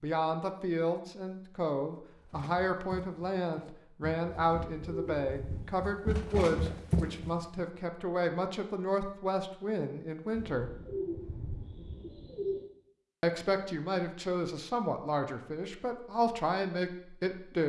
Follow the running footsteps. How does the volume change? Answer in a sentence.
The volume of the running footsteps goes up.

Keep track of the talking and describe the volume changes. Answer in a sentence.
The volume of the talking stays about the same.